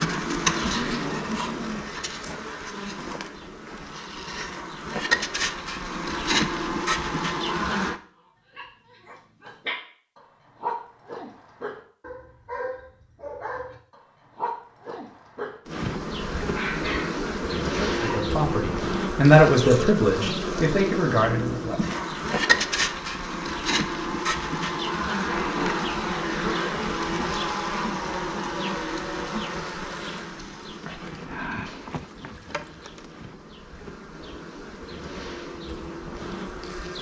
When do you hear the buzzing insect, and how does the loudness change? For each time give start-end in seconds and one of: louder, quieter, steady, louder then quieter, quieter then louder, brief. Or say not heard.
0.0-8.0 quieter then louder
15.7-36.9 quieter.